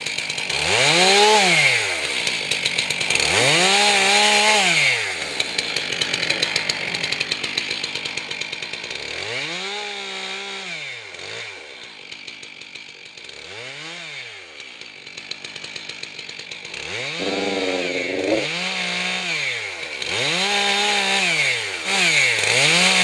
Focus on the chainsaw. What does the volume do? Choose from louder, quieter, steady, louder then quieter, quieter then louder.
quieter then louder.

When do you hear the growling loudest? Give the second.
18 s.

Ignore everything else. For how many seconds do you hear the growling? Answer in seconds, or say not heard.
3 s.